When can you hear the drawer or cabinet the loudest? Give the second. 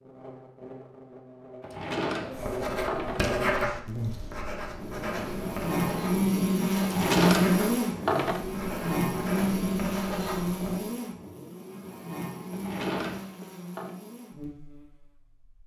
7 s.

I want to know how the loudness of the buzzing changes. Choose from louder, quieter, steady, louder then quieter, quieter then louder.
louder then quieter.